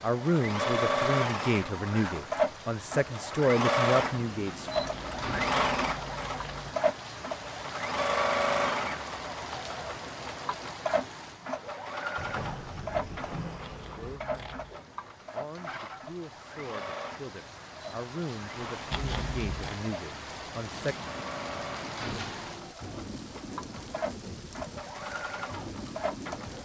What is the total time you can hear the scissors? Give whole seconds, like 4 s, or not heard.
4 s.